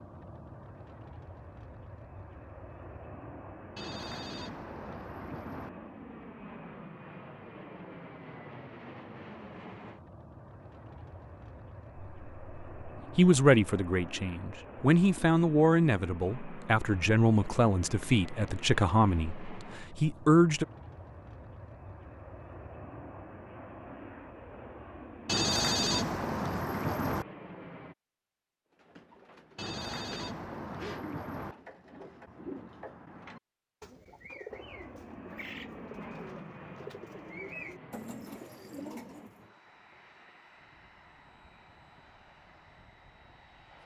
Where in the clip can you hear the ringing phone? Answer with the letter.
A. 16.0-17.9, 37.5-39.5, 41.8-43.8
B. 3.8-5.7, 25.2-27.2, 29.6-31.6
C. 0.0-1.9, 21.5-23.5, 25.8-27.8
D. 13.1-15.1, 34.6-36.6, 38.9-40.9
B.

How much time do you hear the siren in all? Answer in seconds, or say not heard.
not heard.